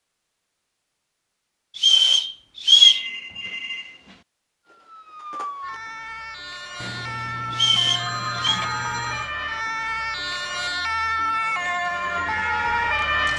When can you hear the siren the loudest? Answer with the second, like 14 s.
13 s.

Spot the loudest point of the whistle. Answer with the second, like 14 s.
3 s.